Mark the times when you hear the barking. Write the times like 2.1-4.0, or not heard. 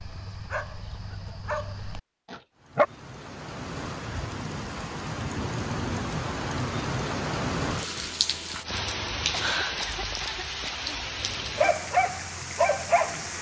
0.0-2.9, 11.4-13.3.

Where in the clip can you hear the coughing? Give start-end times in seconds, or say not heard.
9.3-11.0.